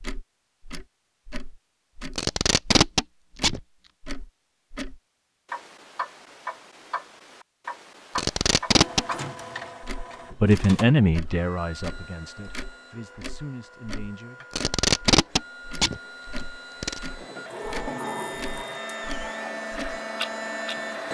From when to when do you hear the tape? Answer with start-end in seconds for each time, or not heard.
2.1-3.6, 8.2-9.1, 14.5-17.0.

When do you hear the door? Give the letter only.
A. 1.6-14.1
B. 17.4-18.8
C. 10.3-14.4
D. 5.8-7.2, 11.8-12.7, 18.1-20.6
B.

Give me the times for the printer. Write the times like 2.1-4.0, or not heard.
8.7-21.1.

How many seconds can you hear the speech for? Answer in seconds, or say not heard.
4 s.